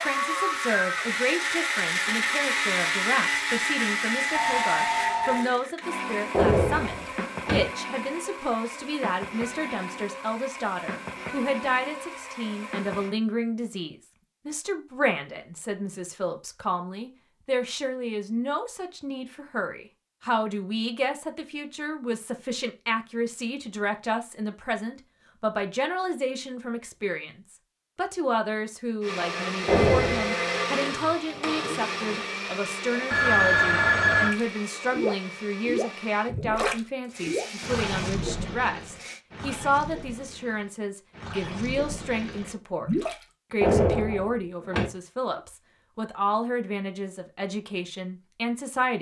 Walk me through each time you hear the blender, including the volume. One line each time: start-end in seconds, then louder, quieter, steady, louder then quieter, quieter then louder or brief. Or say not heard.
0.0-13.2 quieter
29.0-39.2 quieter.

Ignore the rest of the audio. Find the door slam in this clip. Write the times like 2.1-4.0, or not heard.
6.3-7.7, 29.6-30.3, 43.6-44.9.